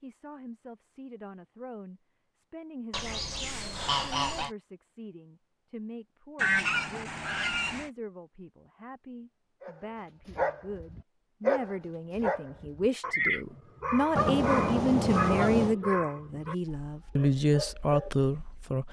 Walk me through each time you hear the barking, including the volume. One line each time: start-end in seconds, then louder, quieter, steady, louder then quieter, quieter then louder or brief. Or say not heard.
9.6-18.8 quieter.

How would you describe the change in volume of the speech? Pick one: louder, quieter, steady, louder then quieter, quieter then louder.
louder.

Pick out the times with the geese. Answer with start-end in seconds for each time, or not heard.
2.9-4.5, 6.3-7.9, 14.2-15.8.